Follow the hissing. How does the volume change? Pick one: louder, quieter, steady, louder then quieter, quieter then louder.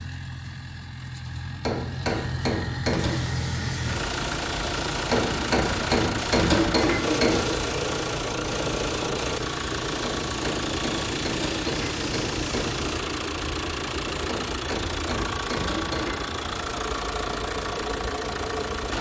steady.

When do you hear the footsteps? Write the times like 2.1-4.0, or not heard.
not heard.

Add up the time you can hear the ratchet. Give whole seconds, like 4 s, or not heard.
not heard.